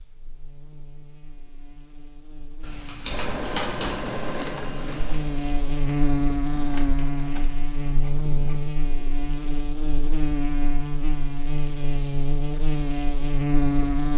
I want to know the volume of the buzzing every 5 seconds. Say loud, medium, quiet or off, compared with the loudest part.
quiet, loud, loud.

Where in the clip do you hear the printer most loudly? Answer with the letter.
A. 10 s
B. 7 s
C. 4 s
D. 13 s
C.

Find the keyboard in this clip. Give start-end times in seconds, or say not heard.
2.6-5.2.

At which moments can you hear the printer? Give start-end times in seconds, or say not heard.
3.0-8.7.